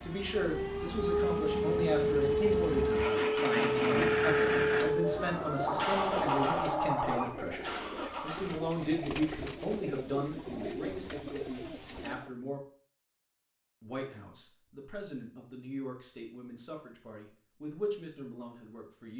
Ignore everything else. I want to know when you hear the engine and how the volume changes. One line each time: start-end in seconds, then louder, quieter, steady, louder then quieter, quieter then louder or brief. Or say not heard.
0.0-8.8 louder then quieter.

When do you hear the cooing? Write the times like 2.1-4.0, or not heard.
5.2-12.3.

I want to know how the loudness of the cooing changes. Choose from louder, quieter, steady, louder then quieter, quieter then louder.
steady.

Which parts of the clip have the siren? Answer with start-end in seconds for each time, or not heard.
0.0-7.2.